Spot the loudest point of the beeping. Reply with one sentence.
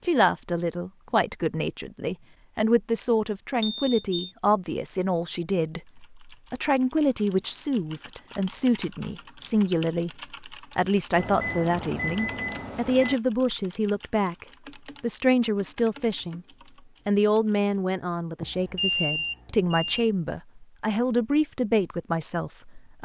The loudest moment of the beeping is at 19 seconds.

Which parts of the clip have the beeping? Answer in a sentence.
The beeping can be heard from 3.6 to 4.3 s, from 11.2 to 13.2 s and from 18.4 to 20.1 s.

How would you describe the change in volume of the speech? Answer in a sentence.
The loudness of the speech stays about the same.